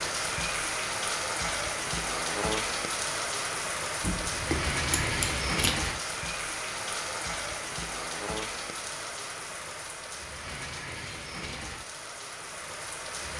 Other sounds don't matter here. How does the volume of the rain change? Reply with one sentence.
The loudness of the rain goes down.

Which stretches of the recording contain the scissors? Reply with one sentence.
You can hear the scissors from 4.0 to 5.9 s.